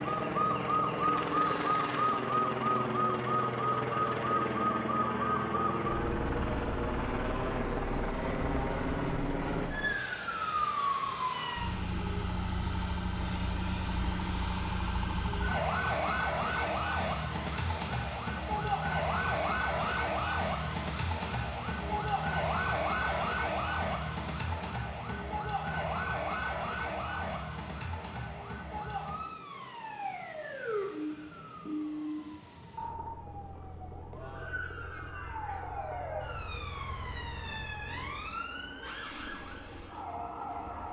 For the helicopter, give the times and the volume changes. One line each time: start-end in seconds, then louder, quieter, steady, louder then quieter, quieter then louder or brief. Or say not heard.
0.0-40.8 quieter.